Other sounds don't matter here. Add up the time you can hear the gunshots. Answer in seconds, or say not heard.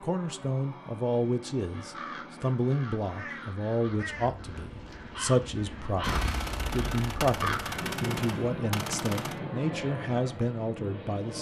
3 s.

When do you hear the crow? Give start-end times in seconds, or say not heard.
1.7-7.8.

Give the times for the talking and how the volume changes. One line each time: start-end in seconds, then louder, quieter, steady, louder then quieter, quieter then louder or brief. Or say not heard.
0.0-11.3 steady.